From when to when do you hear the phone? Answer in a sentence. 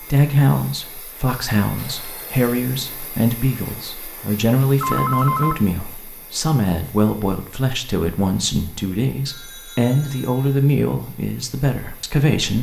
You can hear the phone from 1.8 to 2.4 s, from 4.8 to 5.6 s and from 9.2 to 10.6 s.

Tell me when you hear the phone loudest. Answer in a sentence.
The loudest moment of the phone is at 5 seconds.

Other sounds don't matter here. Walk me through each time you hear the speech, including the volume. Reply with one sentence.
You can hear the speech from 0.0 to 12.5 s, at a steady volume.